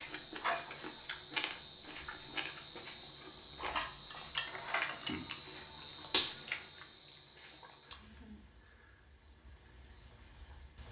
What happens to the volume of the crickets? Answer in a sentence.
The volume of the crickets goes down.